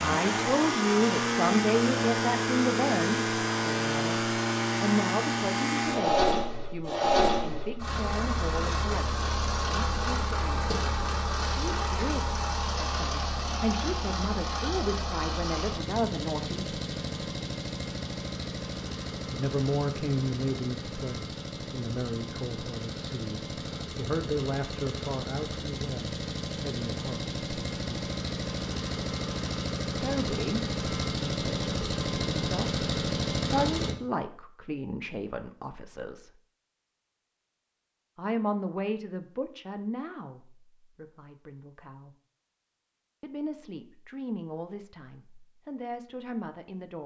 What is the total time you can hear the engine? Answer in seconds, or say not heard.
34 s.